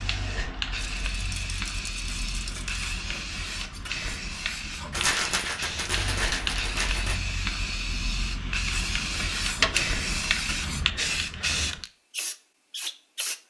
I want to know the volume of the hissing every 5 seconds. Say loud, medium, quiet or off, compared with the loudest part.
medium, loud, loud.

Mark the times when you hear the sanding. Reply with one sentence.
You can hear the sanding from 2.0 to 5.0 s and from 8.7 to 10.8 s.